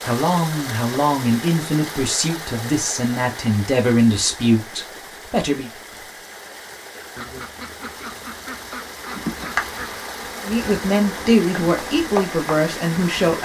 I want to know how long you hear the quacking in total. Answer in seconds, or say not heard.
3 s.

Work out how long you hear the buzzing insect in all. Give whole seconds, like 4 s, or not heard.
4 s.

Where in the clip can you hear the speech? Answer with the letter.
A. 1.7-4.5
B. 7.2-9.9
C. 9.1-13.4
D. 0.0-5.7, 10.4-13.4
D.